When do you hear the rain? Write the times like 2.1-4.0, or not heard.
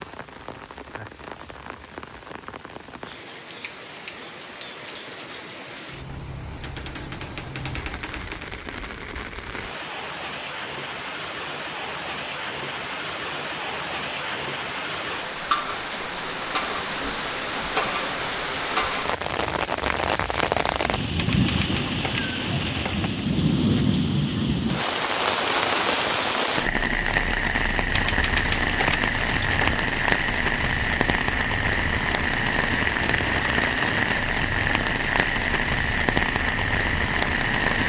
0.0-37.8.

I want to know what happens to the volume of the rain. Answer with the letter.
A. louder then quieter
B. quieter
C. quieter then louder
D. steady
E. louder
E.